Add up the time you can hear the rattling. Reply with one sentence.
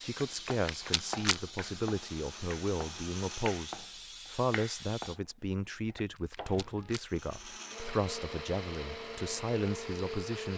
You can hear the rattling for 2 seconds altogether.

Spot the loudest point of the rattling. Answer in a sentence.
The loudest moment of the rattling is at 1 second.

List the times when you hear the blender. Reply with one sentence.
The blender can be heard from 0.0 to 3.9 s and from 7.0 to 10.5 s.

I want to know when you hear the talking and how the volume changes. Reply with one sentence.
The talking can be heard from 0.0 to 10.5 s, at a steady volume.